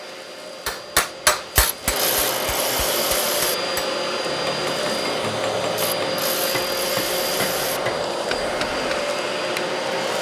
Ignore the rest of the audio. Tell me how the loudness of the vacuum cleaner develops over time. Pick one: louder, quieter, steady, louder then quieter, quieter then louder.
louder.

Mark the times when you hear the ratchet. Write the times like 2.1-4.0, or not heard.
1.6-3.5, 5.8-7.8.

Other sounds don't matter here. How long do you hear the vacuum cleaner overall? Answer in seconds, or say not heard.
10 s.